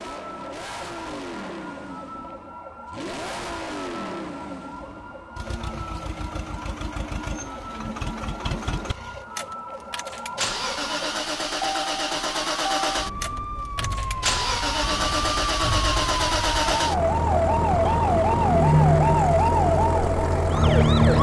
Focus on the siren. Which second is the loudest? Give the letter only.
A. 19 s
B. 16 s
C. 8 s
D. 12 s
A.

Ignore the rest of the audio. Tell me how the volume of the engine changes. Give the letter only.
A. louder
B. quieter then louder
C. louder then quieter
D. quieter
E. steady
A.